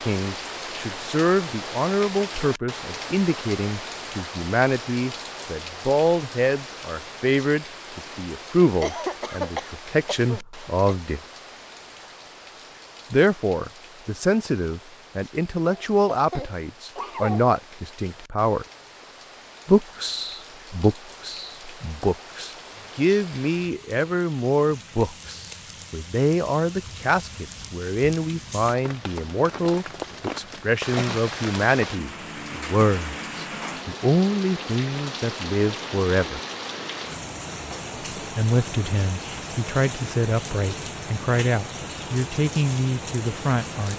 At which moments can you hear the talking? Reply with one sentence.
You can hear the talking from 0.0 to 11.2 s, from 13.1 to 18.6 s, from 19.6 to 36.4 s and from 38.4 to 43.9 s.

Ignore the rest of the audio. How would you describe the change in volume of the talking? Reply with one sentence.
The loudness of the talking stays about the same.